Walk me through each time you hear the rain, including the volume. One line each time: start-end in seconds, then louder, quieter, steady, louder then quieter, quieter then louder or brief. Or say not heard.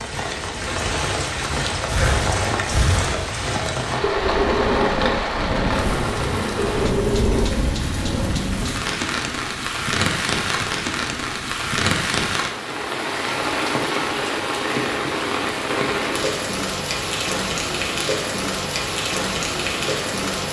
0.0-20.4 steady.